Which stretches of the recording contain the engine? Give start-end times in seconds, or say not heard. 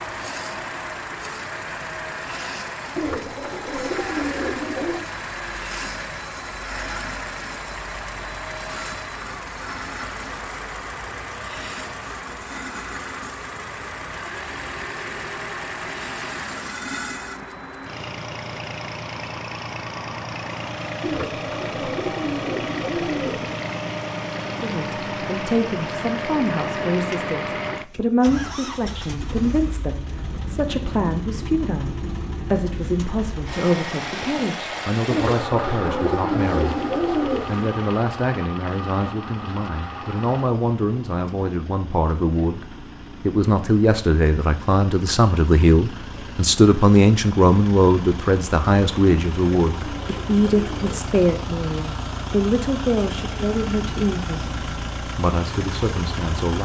0.0-56.6.